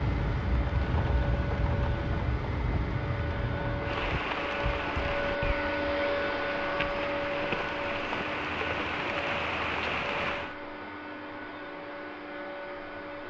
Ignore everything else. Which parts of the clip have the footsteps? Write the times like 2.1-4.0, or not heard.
not heard.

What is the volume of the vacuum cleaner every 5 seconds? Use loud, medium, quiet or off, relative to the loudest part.
medium, loud, medium.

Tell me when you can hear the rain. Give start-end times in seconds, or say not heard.
0.0-10.6.